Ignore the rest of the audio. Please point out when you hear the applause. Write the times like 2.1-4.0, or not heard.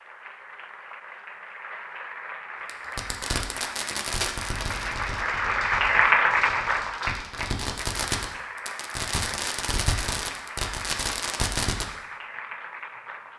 0.0-13.3.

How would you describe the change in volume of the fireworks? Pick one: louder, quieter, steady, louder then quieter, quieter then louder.
quieter then louder.